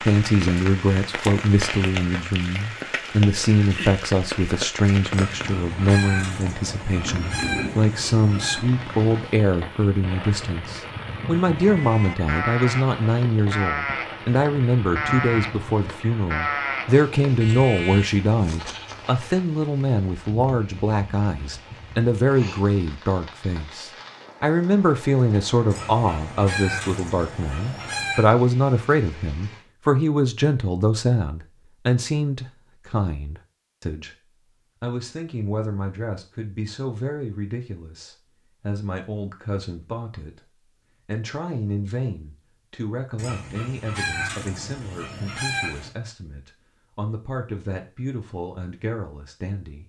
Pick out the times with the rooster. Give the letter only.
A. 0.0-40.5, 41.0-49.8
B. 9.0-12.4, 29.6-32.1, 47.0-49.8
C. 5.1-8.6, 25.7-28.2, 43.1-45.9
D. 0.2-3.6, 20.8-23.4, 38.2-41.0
C.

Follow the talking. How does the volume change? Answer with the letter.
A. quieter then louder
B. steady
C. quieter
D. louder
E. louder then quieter
C.